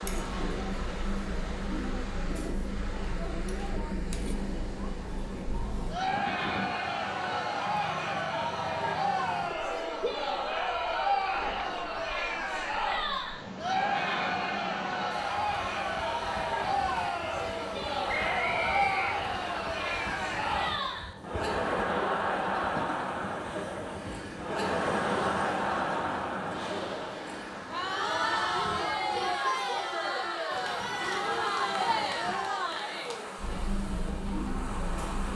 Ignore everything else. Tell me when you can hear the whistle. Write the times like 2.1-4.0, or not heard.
18.1-19.6.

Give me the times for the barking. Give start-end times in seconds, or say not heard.
not heard.